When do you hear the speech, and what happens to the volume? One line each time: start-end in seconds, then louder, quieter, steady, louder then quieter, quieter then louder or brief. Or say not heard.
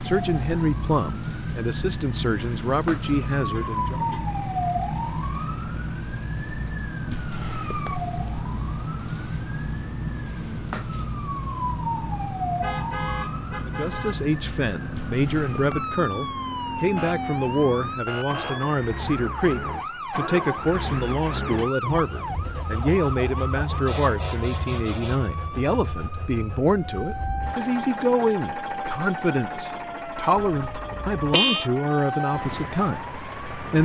0.0-4.0 quieter then louder
13.7-33.8 steady.